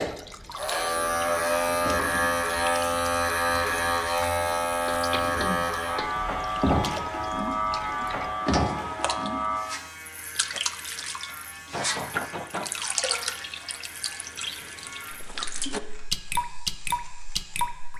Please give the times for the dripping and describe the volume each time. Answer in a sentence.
The dripping can be heard from 0.0 to 17.9 s, getting louder.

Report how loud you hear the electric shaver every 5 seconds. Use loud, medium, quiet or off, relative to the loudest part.
loud, loud, quiet, quiet.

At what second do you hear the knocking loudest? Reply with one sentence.
The loudest moment of the knocking is at 12 seconds.